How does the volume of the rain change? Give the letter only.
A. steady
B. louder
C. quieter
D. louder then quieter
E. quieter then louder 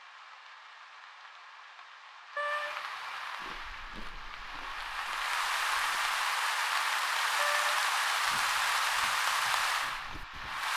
B.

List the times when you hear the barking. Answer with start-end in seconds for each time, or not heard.
not heard.